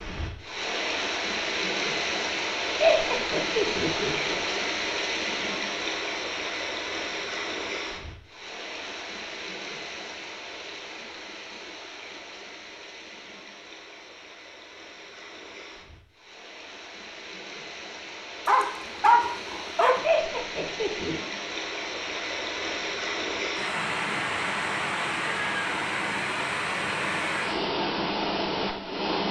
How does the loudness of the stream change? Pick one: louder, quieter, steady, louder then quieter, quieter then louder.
quieter then louder.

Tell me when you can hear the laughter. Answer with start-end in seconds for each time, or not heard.
2.8-4.4, 20.0-21.1.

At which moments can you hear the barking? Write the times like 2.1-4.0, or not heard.
18.4-20.0.